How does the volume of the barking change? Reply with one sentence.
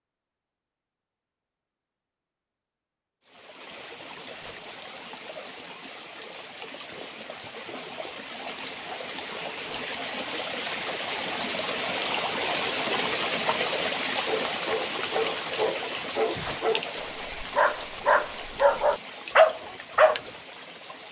The volume of the barking goes up.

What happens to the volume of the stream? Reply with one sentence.
The volume of the stream goes up, then down.